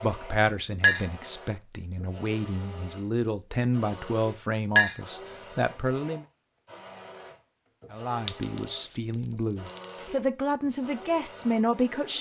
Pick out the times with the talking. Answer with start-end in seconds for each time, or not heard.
0.0-6.2, 7.9-12.1.